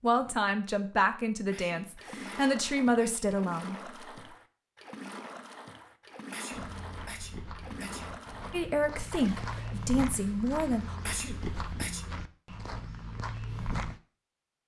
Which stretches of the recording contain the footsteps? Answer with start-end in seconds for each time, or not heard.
6.5-14.0.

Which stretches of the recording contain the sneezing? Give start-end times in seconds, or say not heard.
1.5-3.2, 6.3-8.1, 11.1-12.1.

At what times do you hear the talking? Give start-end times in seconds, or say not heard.
0.0-3.9, 8.5-10.9.